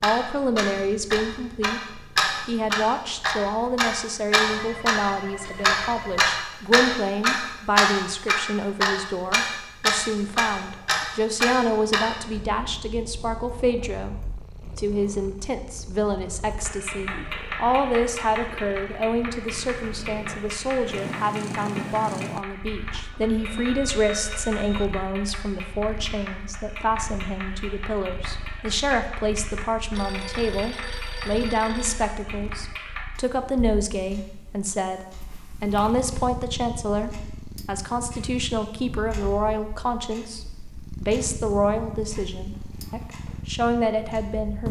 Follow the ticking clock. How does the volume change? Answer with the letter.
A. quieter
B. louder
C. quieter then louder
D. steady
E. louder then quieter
A.